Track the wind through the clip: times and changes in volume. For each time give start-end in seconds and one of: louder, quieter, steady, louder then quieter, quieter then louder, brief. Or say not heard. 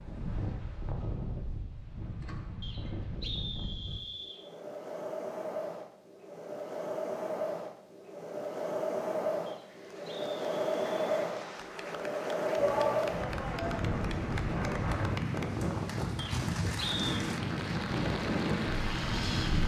0.0-19.6 louder.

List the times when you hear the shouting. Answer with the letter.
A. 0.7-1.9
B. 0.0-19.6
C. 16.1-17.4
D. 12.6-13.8
D.